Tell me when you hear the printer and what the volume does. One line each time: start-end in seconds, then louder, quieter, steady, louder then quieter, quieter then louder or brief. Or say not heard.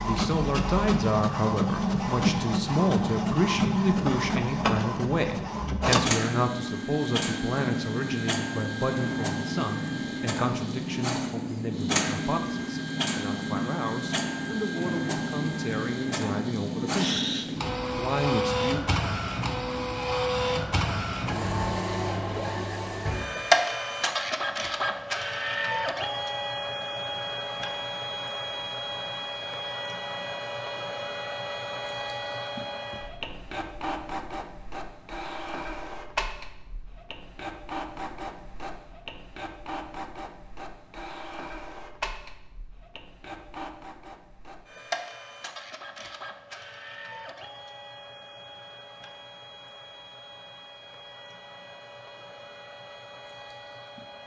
0.0-54.2 quieter.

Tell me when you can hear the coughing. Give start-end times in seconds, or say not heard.
16.9-17.7.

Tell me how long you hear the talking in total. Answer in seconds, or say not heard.
19 s.